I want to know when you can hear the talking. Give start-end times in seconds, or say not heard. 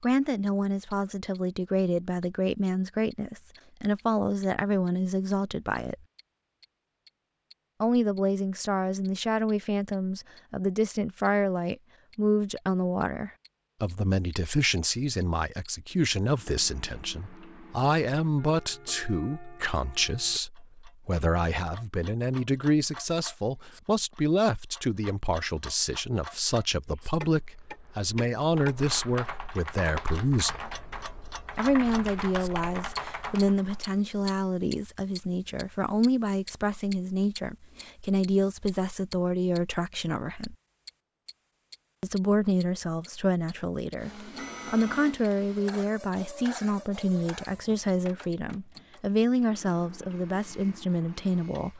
0.0-6.0, 7.8-30.7, 31.6-40.5, 42.0-51.7.